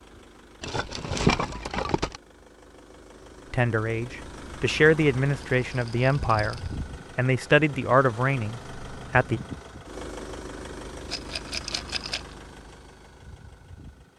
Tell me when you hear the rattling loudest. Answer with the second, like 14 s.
1 s.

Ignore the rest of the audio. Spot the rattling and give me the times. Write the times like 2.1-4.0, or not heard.
0.6-2.2, 5.7-6.8, 11.1-12.2.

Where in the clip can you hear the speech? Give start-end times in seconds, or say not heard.
3.5-9.4.